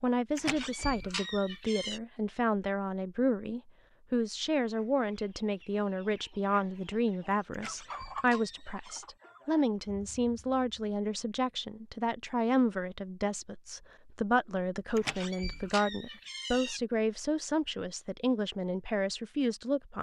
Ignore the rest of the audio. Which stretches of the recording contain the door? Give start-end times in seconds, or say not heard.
0.3-2.0, 7.5-9.1, 14.9-16.8.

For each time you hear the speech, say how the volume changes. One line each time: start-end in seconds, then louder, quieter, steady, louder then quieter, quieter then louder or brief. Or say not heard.
0.0-19.9 steady.